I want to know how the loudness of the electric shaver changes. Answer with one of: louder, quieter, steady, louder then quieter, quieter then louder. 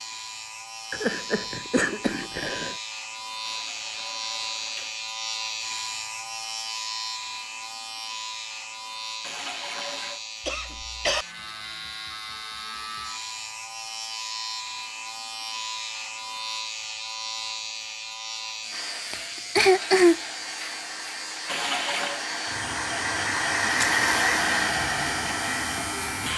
steady.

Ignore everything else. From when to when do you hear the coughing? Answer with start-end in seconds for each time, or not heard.
0.9-2.8, 10.4-11.2, 19.1-20.1.